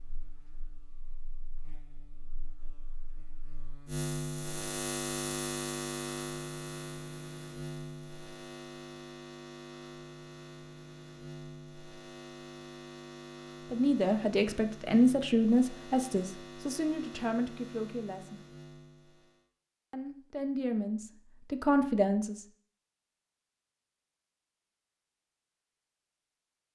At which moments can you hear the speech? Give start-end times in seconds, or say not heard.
13.7-18.4, 19.9-22.4.